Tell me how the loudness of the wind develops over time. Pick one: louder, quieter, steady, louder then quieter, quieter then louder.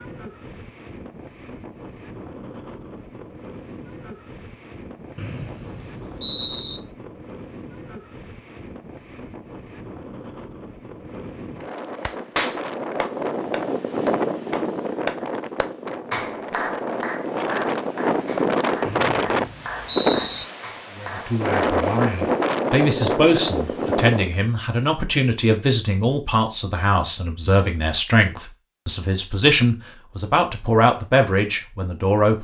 louder.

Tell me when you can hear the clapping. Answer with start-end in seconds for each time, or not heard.
12.0-22.2.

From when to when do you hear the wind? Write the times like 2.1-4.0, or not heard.
0.0-24.3.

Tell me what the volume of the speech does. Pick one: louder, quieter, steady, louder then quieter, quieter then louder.
steady.